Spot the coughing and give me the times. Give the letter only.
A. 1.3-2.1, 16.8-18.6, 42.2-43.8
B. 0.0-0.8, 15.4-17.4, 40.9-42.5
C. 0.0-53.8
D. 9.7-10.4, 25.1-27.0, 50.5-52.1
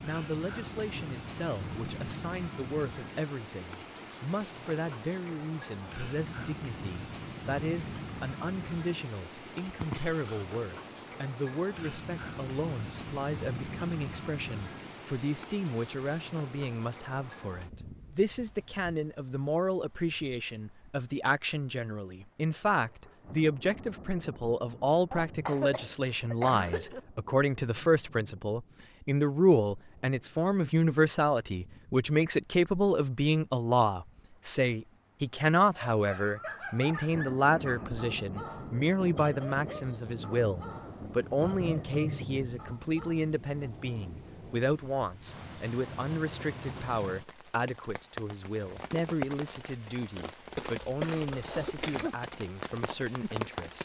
D.